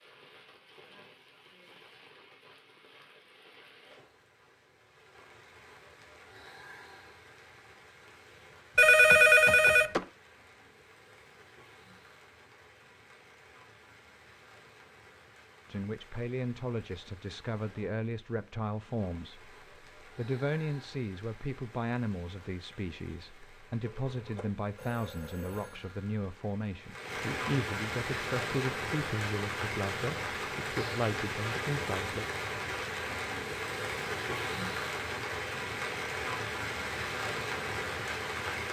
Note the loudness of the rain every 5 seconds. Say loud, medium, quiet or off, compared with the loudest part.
quiet, quiet, quiet, quiet, quiet, loud, loud, loud.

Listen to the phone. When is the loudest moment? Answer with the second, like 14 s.
9 s.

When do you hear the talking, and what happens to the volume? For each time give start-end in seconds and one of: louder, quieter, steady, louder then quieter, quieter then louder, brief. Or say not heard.
15.7-32.2 steady.